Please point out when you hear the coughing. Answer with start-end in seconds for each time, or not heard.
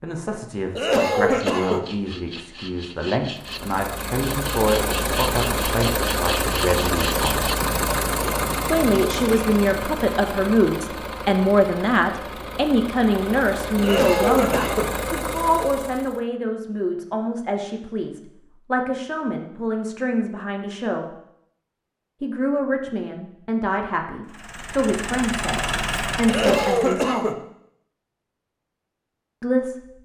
0.8-1.9, 13.8-14.9, 26.2-27.4.